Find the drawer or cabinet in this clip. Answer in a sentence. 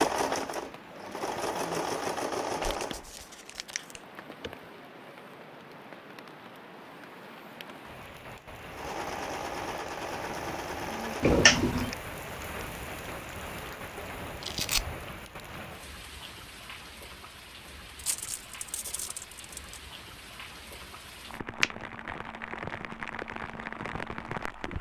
You can't hear the drawer or cabinet here.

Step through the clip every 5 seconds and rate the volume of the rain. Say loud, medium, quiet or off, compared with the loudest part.
medium, medium, loud, medium, loud.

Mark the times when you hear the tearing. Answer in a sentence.
You can hear the tearing from 2.6 to 4.0 s, from 14.4 to 14.8 s and from 17.9 to 19.8 s.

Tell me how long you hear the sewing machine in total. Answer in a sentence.
You can hear the sewing machine for 6 seconds altogether.